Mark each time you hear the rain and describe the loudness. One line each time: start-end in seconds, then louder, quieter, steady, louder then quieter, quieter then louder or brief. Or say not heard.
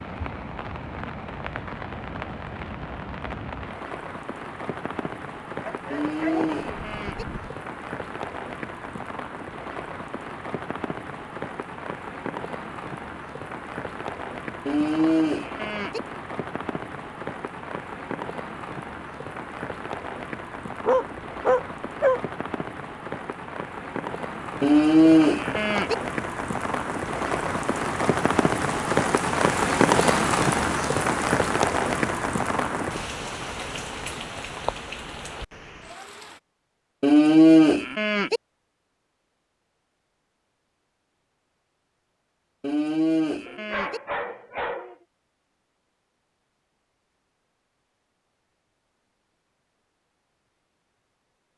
0.0-36.4 louder.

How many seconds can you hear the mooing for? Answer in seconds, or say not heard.
7 s.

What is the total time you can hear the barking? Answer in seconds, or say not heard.
5 s.